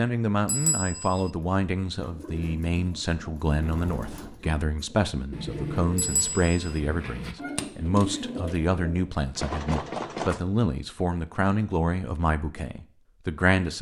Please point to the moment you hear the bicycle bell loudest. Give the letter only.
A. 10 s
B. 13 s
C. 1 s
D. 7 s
A.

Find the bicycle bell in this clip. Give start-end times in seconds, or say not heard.
0.5-1.3, 6.0-6.8, 9.3-10.4.